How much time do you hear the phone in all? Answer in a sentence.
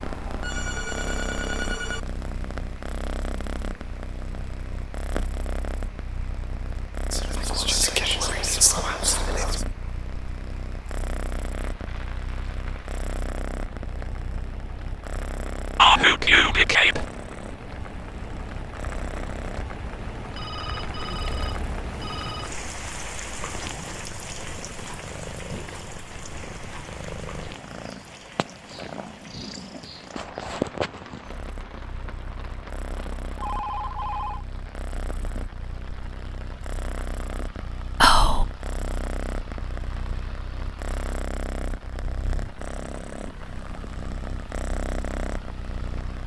You can hear the phone for 5 seconds altogether.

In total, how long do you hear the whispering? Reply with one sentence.
You can hear the whispering for 4 seconds altogether.